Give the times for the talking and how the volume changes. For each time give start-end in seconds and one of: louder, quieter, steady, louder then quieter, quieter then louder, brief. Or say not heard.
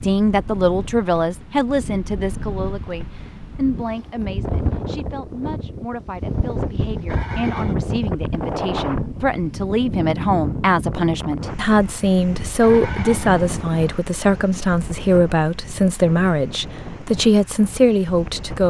0.0-18.6 quieter then louder.